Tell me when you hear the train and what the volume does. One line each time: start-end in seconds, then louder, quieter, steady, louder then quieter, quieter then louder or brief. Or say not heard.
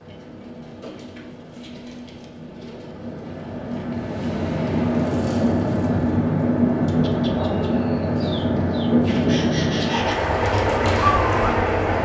0.0-12.0 louder.